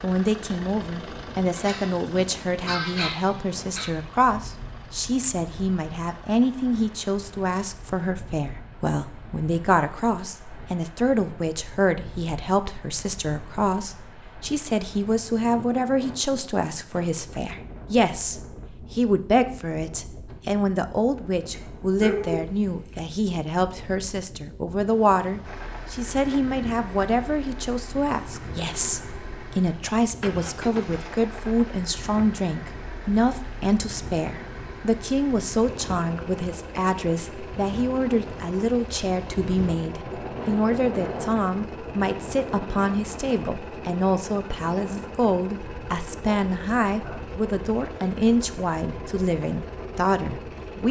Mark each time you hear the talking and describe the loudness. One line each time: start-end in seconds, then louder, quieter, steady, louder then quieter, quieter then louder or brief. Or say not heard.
0.0-50.8 steady.